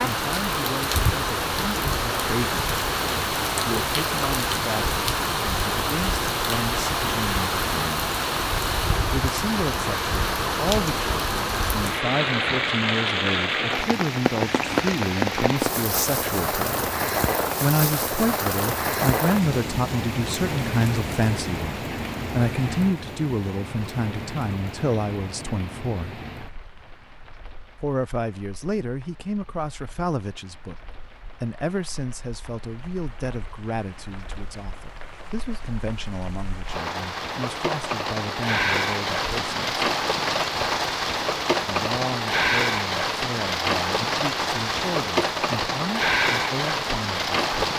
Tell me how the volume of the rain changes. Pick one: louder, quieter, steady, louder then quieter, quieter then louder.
quieter then louder.